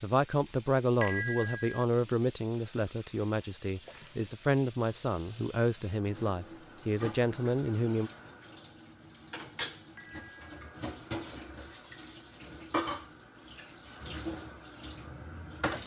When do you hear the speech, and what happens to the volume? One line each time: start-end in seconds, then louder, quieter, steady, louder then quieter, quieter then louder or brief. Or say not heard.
0.0-8.1 steady.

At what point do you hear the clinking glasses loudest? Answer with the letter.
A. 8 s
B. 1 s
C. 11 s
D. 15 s
B.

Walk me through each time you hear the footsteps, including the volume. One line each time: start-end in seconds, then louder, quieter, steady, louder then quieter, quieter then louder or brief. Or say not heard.
not heard.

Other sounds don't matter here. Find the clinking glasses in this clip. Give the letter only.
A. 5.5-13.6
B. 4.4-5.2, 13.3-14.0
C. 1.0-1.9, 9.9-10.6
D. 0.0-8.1
C.